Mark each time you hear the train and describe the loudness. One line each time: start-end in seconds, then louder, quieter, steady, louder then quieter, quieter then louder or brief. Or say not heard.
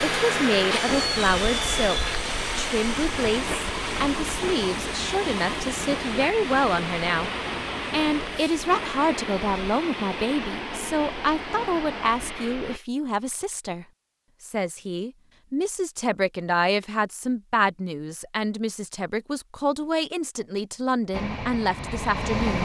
0.0-12.8 quieter
21.1-22.6 brief.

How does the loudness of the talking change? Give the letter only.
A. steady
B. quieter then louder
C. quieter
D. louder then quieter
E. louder
A.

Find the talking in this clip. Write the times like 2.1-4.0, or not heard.
0.0-7.3, 7.9-22.6.